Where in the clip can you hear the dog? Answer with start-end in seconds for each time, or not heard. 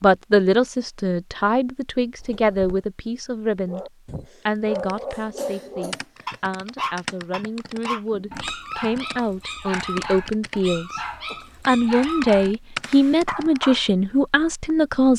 3.6-13.9.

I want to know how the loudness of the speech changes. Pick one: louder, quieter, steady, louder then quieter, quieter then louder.
quieter then louder.